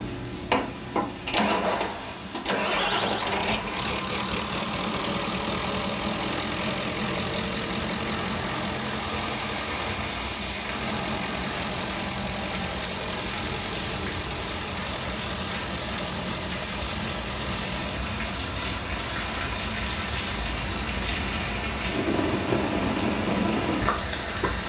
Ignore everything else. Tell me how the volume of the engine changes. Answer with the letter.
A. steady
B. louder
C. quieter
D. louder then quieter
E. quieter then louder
C.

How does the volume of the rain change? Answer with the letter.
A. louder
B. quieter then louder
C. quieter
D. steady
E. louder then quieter
A.